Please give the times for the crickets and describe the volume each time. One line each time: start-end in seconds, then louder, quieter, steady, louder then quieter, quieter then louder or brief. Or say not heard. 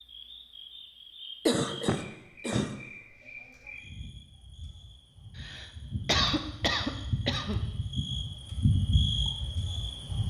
0.0-10.2 louder.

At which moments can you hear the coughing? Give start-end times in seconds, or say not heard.
1.4-2.8, 5.3-7.7.